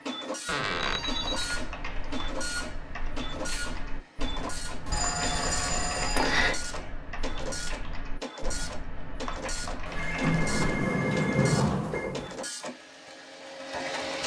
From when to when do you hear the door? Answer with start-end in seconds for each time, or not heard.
0.5-1.1, 10.2-12.4.